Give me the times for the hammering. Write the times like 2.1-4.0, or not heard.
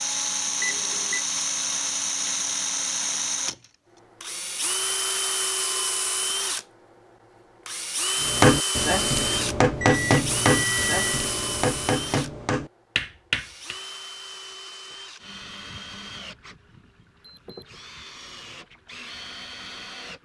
8.2-13.8.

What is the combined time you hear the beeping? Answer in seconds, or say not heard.
3 s.